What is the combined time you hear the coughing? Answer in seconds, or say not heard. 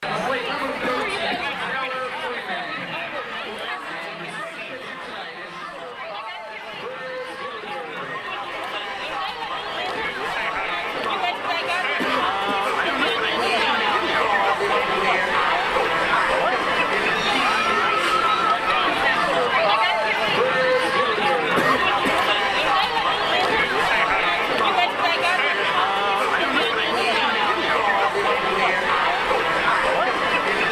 2 s.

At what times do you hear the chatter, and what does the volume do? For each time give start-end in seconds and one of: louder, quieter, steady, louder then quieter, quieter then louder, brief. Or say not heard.
0.0-30.6 louder.